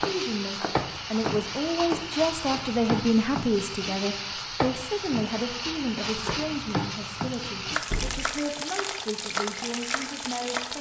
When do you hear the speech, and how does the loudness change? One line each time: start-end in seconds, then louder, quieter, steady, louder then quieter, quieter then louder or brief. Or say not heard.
0.0-10.7 quieter.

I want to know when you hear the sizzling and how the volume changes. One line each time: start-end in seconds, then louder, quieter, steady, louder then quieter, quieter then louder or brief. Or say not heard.
0.0-10.7 steady.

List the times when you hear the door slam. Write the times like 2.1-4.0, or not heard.
7.8-8.4.